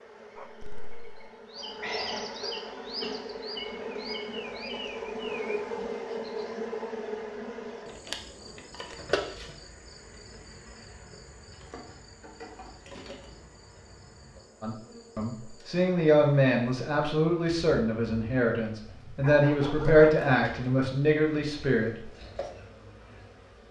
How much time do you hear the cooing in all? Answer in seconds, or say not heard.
not heard.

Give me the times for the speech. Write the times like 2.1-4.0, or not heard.
14.6-22.1.